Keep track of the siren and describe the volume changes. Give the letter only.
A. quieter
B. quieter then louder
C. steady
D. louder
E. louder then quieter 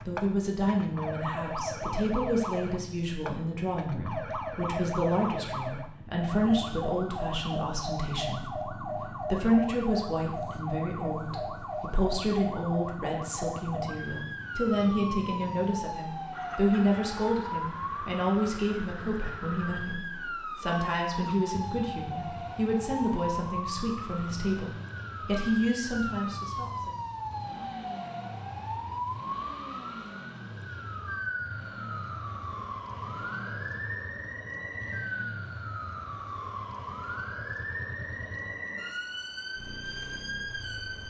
C.